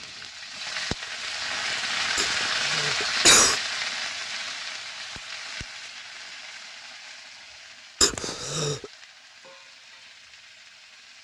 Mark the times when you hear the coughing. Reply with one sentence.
You can hear the coughing from 2.1 to 3.6 s and from 8.0 to 8.8 s.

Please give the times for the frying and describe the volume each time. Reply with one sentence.
The frying can be heard from 0.0 to 11.1 s, getting quieter.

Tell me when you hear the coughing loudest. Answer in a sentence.
The loudest moment of the coughing is at 3 seconds.